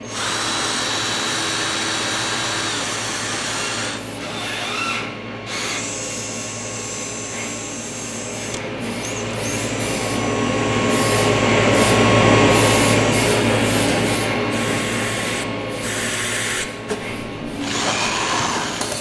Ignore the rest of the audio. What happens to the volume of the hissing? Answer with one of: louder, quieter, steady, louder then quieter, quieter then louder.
louder then quieter.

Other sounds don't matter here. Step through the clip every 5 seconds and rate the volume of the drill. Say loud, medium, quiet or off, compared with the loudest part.
loud, medium, medium, loud.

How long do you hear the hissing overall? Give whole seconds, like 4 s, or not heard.
19 s.